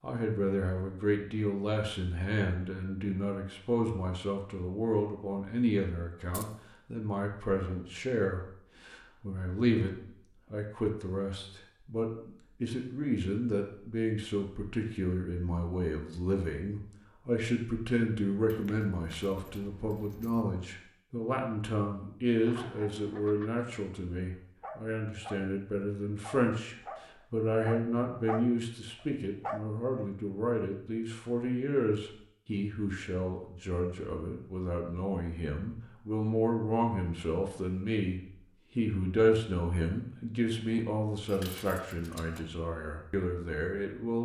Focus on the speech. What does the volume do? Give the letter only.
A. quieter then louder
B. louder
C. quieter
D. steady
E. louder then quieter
D.